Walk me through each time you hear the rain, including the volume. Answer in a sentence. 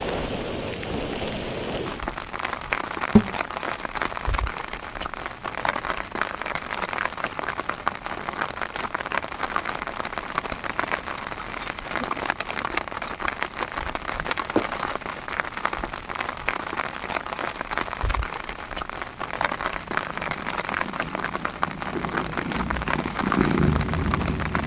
The rain can be heard from 0.0 to 24.6 s, at a steady volume.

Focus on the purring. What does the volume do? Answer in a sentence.
The volume of the purring goes up.